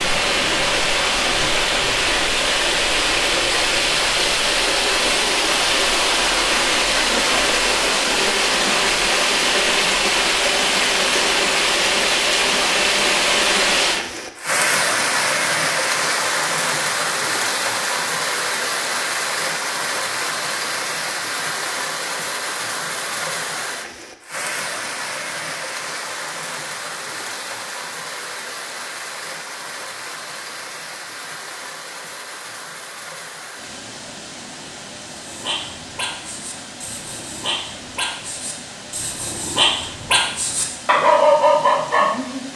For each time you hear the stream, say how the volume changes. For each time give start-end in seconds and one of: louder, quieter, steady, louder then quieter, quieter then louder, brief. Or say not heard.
0.0-42.5 quieter.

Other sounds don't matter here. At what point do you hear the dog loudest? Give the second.
41 s.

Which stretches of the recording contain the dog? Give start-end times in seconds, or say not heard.
35.1-42.5.